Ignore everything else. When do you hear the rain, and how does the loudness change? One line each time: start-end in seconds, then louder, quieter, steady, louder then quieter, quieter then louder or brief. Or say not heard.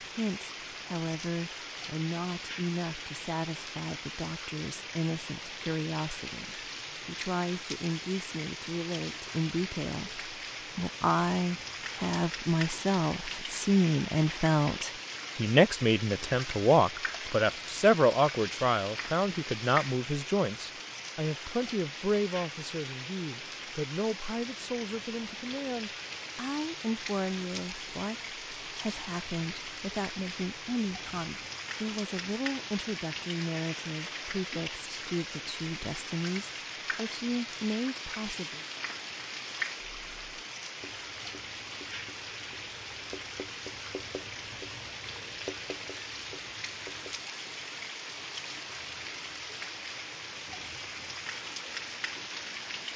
0.0-52.9 steady.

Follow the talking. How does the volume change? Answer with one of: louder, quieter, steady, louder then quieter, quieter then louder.
louder then quieter.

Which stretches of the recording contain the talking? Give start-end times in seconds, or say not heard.
0.1-38.6.